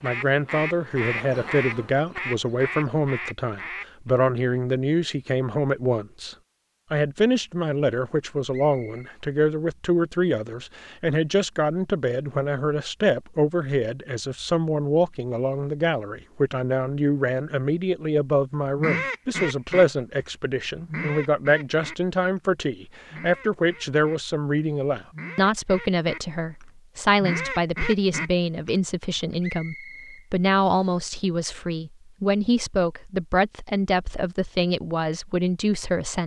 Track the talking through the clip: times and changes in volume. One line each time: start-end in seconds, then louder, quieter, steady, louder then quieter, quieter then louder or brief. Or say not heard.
0.0-36.2 steady.